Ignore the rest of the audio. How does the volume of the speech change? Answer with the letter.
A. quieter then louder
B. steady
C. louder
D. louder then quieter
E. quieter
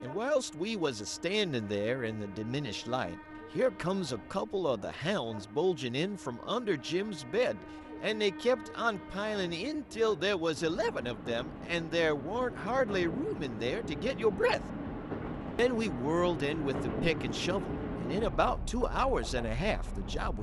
B.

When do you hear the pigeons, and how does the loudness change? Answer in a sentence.
The pigeons can't be heard in this clip.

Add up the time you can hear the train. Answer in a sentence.
The train can be heard for 20 seconds in total.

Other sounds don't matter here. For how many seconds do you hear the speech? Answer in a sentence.
You can hear the speech for 19 seconds altogether.